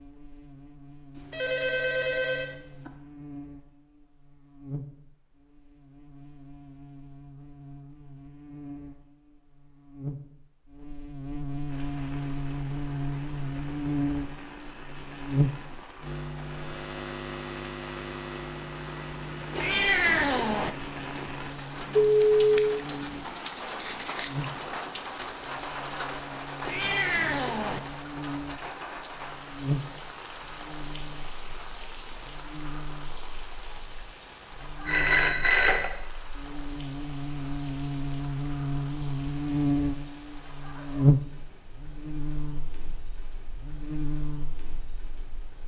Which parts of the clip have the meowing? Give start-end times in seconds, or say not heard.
19.6-20.7, 26.6-27.8.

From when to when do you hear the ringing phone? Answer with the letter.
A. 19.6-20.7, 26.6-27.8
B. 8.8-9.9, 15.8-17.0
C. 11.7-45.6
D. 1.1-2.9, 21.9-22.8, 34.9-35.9
D.